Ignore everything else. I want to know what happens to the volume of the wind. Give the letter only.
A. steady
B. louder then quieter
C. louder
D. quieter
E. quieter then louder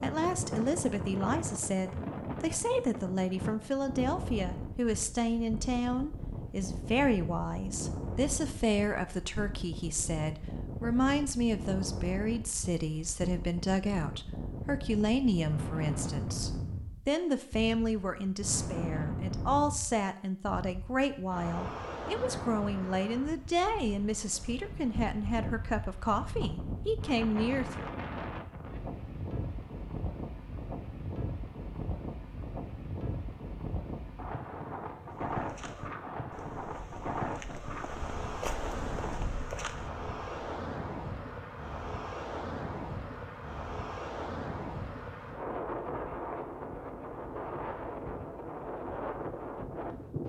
A.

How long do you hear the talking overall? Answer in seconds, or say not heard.
28 s.